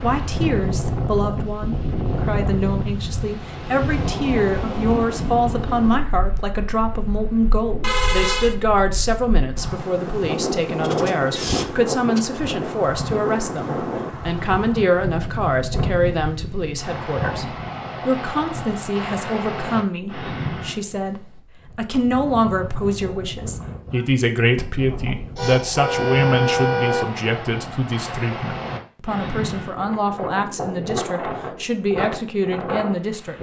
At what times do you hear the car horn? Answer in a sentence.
You can hear the car horn from 7.8 to 8.6 s and from 25.4 to 27.1 s.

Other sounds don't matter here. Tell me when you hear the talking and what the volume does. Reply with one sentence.
You can hear the talking from 0.0 to 33.3 s, at a steady volume.